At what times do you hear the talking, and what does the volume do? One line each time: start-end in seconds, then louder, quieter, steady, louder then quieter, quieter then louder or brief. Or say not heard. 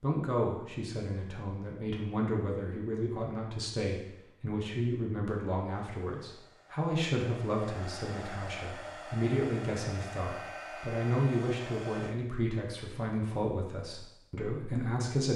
0.0-15.3 steady.